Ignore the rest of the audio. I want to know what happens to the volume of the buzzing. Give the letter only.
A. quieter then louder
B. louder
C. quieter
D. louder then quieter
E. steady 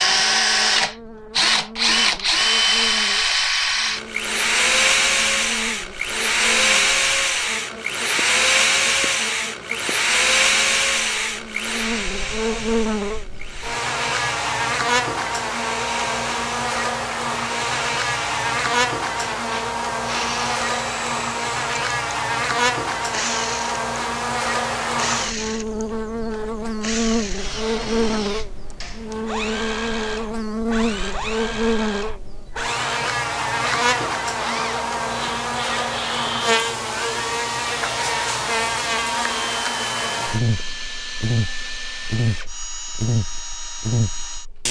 B.